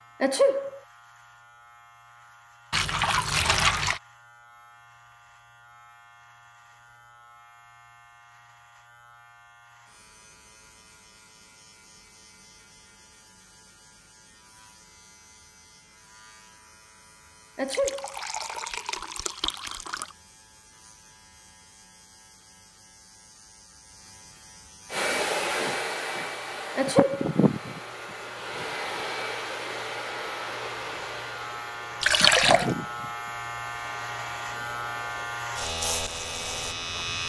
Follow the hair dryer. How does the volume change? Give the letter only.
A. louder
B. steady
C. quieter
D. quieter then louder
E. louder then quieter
C.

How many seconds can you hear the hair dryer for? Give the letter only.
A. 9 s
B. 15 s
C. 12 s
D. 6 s
C.